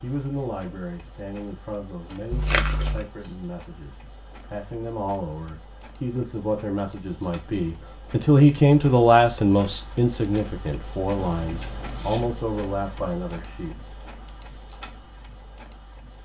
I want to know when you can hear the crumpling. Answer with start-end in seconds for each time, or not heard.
2.3-3.1.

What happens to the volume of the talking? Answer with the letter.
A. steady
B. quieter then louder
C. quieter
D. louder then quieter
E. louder
D.